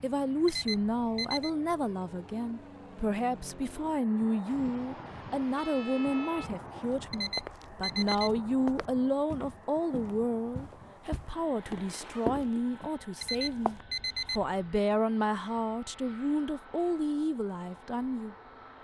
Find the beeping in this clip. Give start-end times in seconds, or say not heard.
0.5-1.5, 7.1-8.3, 13.2-14.6.